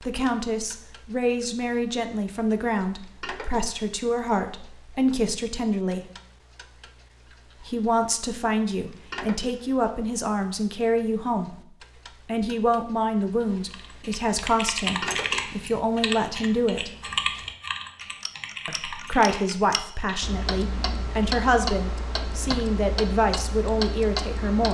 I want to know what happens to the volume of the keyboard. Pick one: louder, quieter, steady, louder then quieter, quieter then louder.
quieter.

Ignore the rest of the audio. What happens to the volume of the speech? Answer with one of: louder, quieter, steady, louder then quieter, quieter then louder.
steady.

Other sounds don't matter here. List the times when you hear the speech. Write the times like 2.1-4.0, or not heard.
0.0-6.0, 7.6-11.6, 12.2-16.9, 18.6-24.6.